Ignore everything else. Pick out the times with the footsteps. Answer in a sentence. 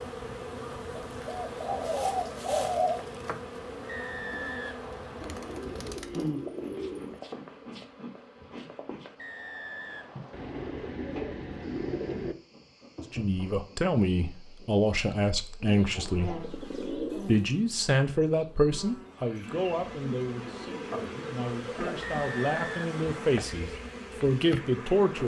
You can't hear the footsteps here.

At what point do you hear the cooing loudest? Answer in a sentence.
The volume of the cooing peaks at 3 seconds.